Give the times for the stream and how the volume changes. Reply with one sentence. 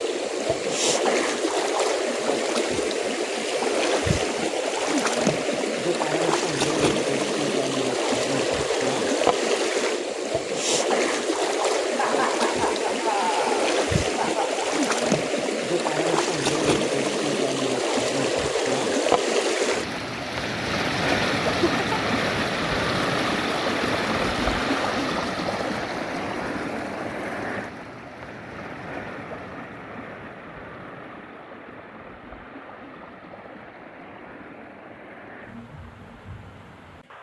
The stream can be heard from 0.0 to 37.1 s, getting quieter.